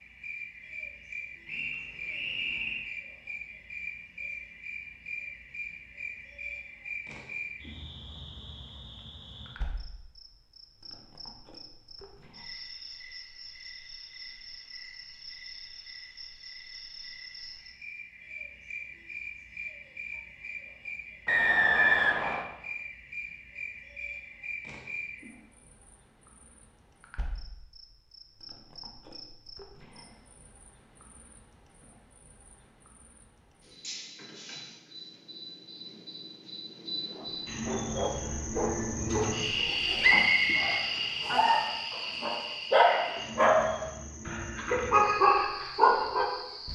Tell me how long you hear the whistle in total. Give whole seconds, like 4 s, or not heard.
4 s.